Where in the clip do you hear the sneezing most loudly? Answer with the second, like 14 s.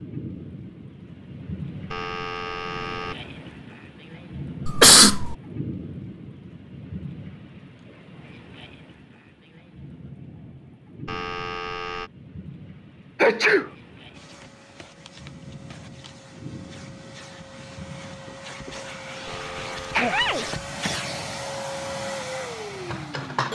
5 s.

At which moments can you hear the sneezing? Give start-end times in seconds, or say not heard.
4.7-5.3, 13.2-13.7, 18.8-20.6.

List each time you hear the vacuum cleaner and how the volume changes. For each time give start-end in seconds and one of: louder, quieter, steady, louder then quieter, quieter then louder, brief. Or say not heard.
14.1-23.5 louder.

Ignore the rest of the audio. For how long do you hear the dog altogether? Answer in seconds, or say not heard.
not heard.